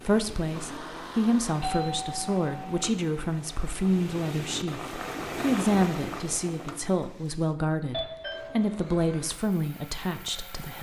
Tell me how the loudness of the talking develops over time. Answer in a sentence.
The volume of the talking stays about the same.